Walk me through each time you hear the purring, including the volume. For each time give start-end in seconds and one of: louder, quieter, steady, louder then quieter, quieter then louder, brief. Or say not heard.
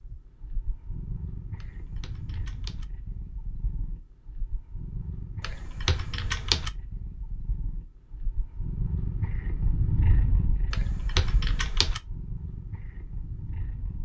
0.0-14.0 louder then quieter.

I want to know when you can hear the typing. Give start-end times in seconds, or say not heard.
1.6-2.9, 5.4-6.7, 10.7-12.0.